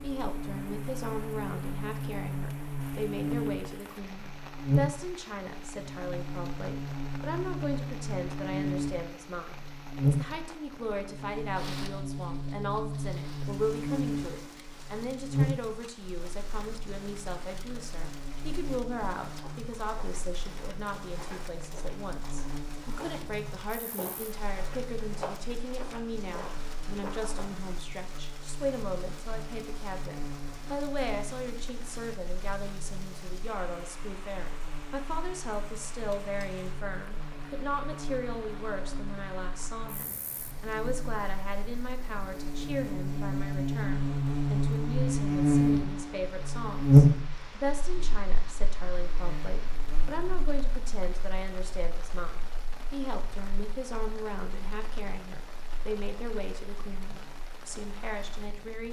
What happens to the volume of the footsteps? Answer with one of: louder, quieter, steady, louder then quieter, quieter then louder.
louder.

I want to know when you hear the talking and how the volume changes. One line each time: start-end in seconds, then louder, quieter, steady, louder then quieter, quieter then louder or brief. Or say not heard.
0.0-58.8 steady.